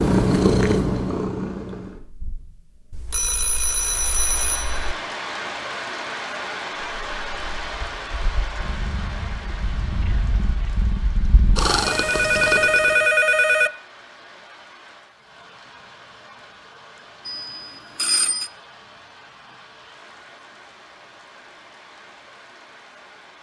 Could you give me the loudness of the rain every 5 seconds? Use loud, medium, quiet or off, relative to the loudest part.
loud, loud, quiet, quiet, quiet.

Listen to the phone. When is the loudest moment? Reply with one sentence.
The volume of the phone peaks at 13 seconds.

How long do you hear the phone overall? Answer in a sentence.
The phone can be heard for 5 seconds in total.